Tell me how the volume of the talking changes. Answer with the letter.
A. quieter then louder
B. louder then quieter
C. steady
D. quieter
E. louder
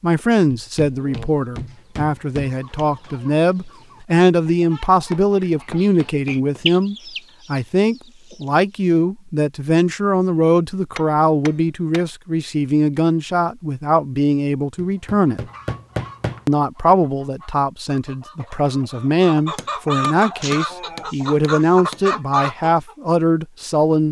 C.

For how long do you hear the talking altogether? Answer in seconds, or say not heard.
23 s.